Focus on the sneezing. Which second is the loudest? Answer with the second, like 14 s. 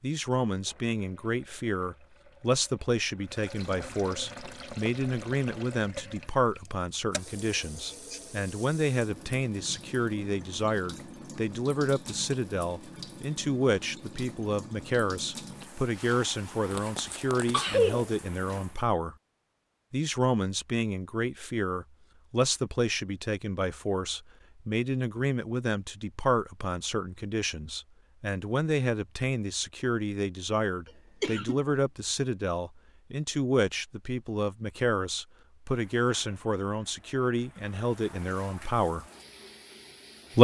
18 s.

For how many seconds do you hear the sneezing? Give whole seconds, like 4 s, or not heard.
3 s.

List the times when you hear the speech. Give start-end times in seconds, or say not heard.
0.0-19.1, 19.9-39.0.